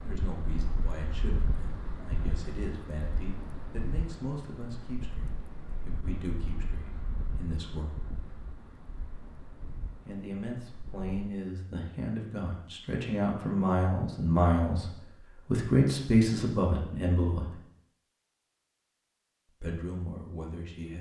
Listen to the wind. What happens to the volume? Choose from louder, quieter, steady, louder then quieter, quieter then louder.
quieter.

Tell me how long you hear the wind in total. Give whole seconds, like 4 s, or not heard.
11 s.